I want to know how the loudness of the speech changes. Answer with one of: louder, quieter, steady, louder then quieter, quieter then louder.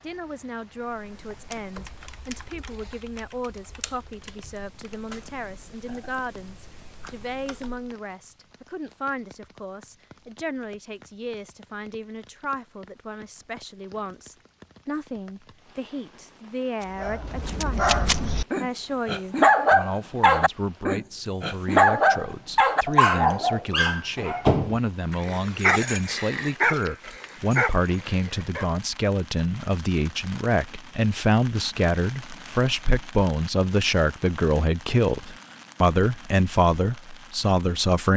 louder.